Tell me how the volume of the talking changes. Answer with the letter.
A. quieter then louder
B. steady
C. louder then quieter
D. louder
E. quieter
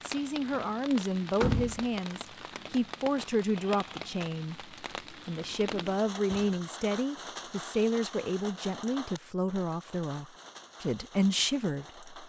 B.